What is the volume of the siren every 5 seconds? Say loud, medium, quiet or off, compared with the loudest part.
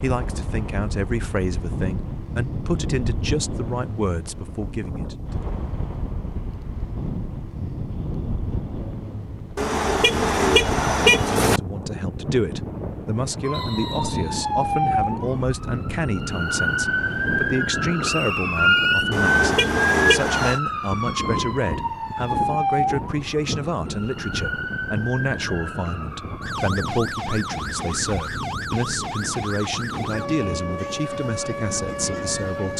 off, off, loud, loud, loud, medium, medium.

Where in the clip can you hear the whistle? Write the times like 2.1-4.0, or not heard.
13.5-14.2, 18.0-19.1.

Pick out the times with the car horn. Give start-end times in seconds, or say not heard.
9.6-11.6, 19.1-20.6.